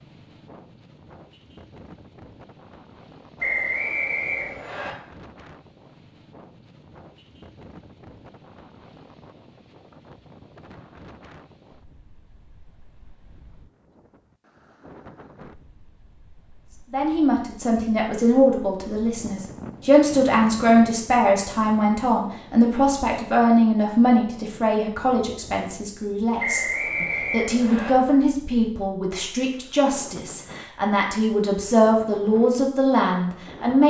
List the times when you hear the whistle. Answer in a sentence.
The whistle can be heard from 3.4 to 5.0 s and from 26.4 to 27.9 s.